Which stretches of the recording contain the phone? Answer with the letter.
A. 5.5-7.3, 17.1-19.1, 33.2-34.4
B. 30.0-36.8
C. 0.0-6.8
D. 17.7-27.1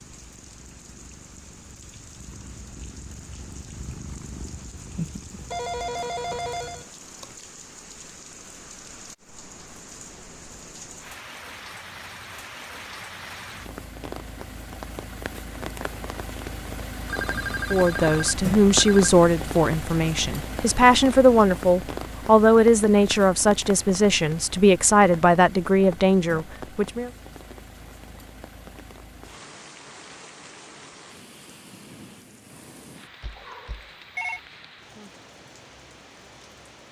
A.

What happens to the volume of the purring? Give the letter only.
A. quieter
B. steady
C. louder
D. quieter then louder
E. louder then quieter
E.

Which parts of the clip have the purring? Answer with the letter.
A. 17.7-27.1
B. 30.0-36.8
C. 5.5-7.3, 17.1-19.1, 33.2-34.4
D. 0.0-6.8
D.